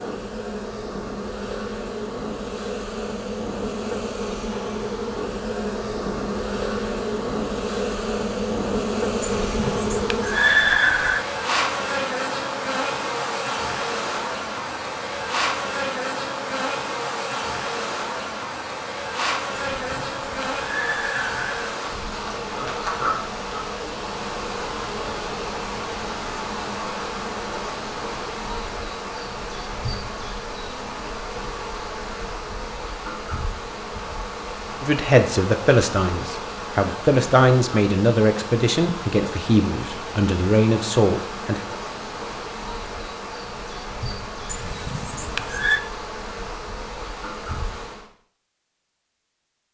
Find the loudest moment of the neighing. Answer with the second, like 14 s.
11 s.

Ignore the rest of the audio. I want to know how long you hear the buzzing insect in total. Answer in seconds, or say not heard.
48 s.